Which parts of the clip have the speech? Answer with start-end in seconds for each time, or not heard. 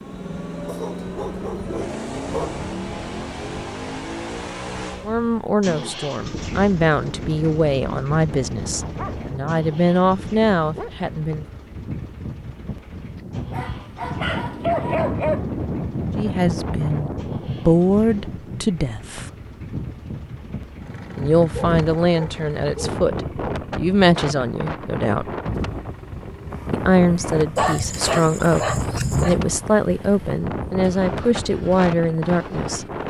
5.0-11.4, 16.1-19.3, 21.1-25.4, 26.7-32.9.